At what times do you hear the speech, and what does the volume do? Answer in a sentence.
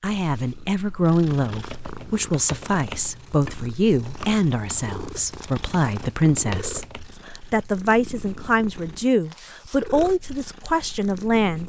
You can hear the speech from 0.0 to 11.6 s, at a steady volume.